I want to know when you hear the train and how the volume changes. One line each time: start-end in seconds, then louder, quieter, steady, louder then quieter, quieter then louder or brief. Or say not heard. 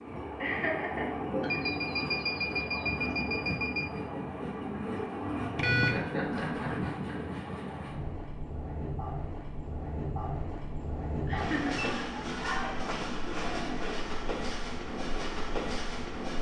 0.0-16.3 steady.